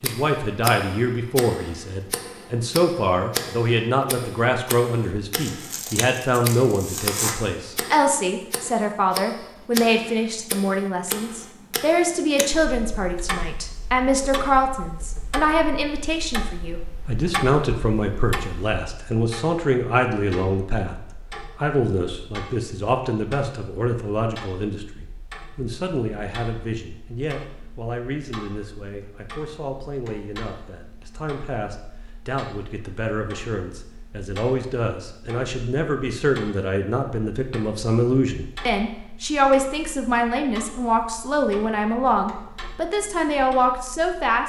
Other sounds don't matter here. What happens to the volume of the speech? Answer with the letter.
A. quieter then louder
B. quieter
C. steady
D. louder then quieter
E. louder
A.